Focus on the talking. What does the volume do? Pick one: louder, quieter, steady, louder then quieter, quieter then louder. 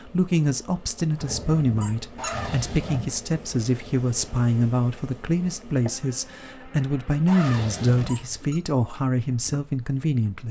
steady.